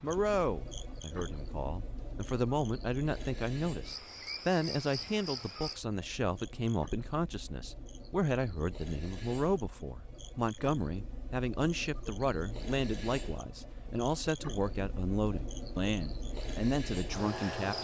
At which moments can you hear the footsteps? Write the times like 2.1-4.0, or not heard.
not heard.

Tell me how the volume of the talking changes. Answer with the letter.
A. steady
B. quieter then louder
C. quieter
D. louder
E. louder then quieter
A.